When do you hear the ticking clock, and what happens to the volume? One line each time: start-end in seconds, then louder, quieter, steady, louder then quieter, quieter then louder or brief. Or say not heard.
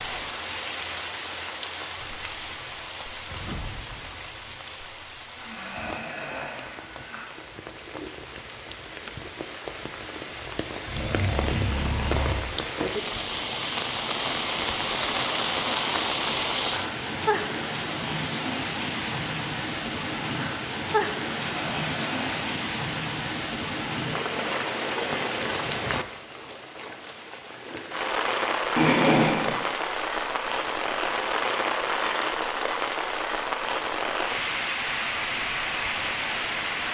not heard.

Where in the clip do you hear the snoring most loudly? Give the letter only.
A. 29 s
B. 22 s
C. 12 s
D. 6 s
A.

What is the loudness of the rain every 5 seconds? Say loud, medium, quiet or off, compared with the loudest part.
medium, quiet, loud, loud, loud, loud, loud, loud.